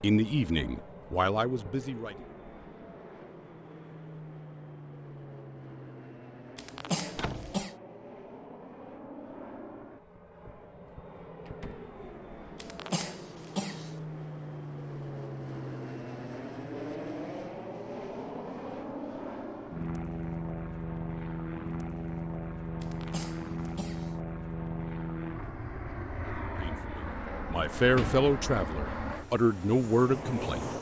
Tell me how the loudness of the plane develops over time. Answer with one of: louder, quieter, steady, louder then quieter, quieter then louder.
louder.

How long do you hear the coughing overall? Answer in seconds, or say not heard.
4 s.